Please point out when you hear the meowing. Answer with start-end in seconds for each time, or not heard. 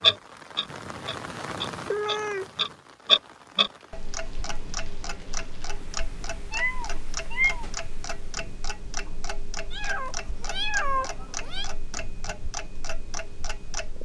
0.7-2.7, 6.5-7.7, 9.7-11.7.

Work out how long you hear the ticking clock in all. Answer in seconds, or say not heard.
14 s.